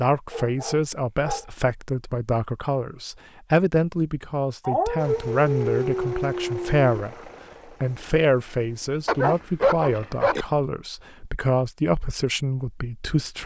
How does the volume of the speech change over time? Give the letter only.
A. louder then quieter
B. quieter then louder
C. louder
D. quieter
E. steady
E.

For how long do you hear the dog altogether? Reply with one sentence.
The dog can be heard for 5 seconds in total.